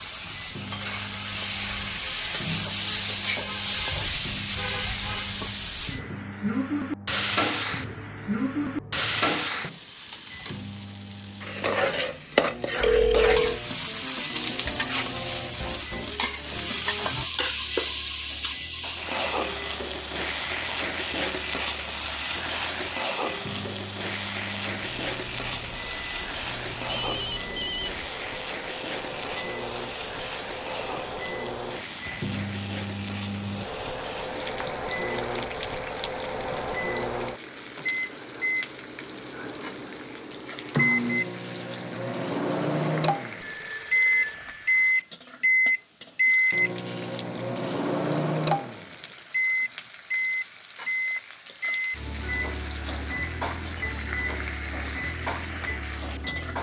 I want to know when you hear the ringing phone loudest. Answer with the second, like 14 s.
13 s.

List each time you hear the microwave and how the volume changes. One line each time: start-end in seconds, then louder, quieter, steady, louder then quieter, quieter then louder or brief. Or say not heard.
0.0-56.5 louder.